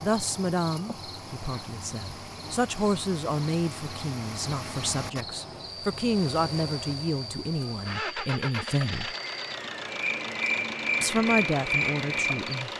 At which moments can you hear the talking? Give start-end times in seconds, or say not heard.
0.0-9.2, 11.0-12.7.